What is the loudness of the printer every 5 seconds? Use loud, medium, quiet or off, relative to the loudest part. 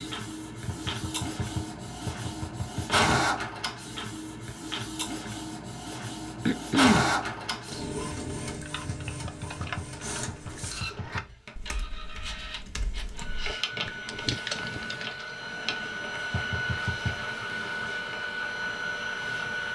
loud, loud, medium, loud.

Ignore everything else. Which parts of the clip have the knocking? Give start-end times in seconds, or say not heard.
0.7-3.0, 8.8-11.3, 16.3-17.2.